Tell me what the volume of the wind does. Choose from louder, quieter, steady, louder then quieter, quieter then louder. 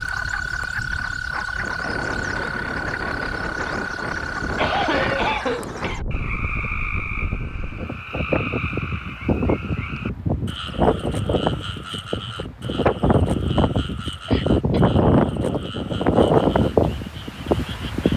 louder.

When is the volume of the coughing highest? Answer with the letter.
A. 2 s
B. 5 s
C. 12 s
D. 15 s
B.